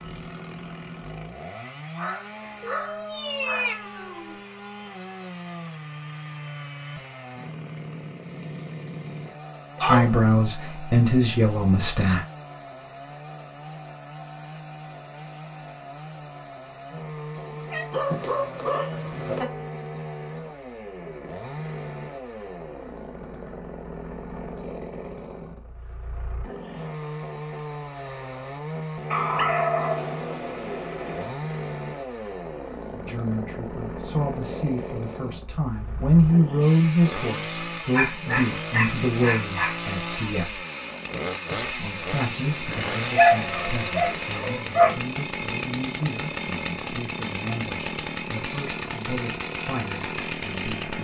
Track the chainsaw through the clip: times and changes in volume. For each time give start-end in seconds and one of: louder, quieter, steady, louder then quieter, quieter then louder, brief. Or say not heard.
0.0-50.9 louder.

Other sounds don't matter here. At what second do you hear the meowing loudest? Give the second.
4 s.